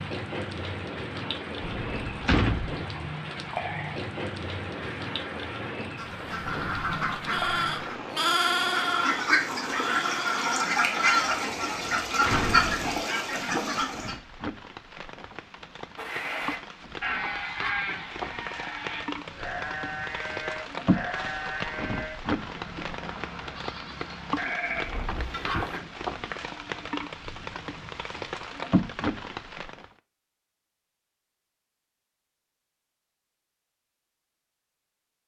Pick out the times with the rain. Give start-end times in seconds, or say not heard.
0.0-29.9.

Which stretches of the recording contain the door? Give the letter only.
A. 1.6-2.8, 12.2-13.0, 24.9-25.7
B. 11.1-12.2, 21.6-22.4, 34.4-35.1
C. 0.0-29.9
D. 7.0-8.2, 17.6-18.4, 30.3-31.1
A.